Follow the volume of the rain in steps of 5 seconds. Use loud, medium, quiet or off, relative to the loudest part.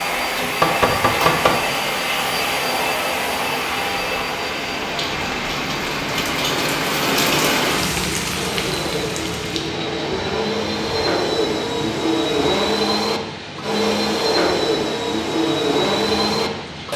medium, loud, medium, medium.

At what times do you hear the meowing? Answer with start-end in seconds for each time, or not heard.
not heard.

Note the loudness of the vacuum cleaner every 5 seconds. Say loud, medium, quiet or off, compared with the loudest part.
loud, medium, loud, loud.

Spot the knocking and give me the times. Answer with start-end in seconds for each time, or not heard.
0.4-1.6.